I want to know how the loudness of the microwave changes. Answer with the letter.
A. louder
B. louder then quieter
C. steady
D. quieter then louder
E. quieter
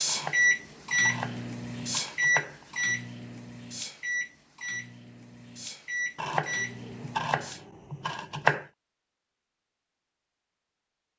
D.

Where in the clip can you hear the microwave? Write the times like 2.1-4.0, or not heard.
0.0-7.6.